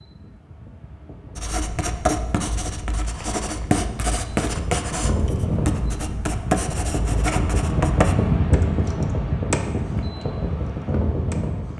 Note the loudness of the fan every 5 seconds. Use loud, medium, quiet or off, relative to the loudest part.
quiet, loud, loud.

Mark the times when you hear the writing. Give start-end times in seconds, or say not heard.
1.4-8.2.